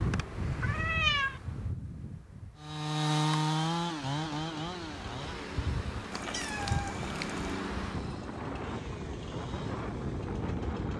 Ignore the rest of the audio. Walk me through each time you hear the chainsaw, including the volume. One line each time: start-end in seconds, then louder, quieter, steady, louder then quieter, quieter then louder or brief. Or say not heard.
2.5-10.9 quieter.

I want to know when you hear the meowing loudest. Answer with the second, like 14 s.
1 s.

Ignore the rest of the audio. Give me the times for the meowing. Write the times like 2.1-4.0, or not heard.
0.6-1.4, 6.1-7.6.